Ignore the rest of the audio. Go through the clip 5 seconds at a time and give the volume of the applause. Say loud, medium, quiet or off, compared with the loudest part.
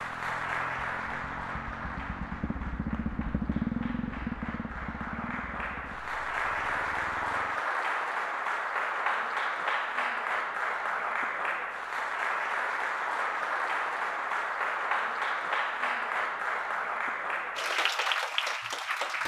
medium, loud, loud, loud.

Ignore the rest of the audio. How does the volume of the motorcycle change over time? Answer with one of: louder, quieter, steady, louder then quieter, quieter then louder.
louder then quieter.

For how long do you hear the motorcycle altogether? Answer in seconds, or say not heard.
8 s.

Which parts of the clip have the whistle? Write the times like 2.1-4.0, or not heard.
not heard.